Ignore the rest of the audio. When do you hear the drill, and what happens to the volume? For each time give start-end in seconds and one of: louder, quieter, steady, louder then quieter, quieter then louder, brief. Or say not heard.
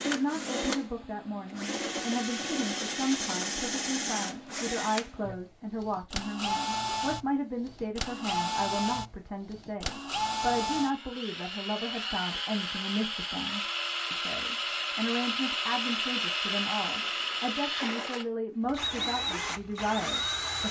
0.0-20.6 steady.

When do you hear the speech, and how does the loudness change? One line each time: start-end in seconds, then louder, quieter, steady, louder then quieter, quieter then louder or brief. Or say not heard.
0.0-20.6 steady.